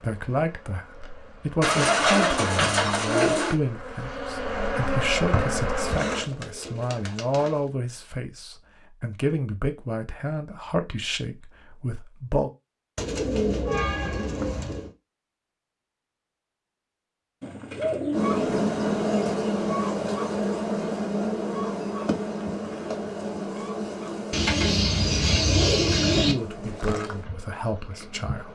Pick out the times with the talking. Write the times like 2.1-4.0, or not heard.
0.0-12.5, 26.2-28.5.